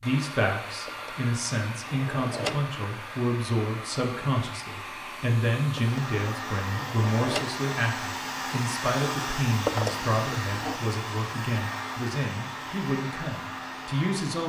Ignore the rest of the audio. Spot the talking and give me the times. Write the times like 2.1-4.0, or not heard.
0.0-14.4.